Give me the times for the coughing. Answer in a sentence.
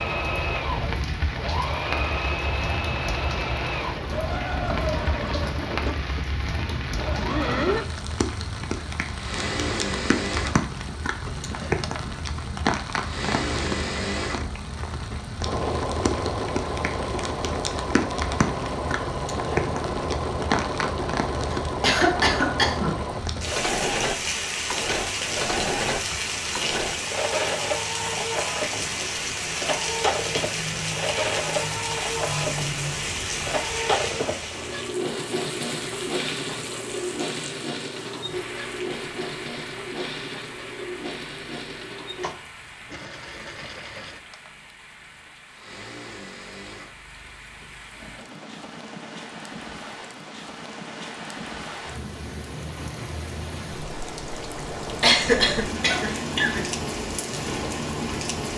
The coughing can be heard from 21.5 to 22.9 s and from 55.0 to 56.6 s.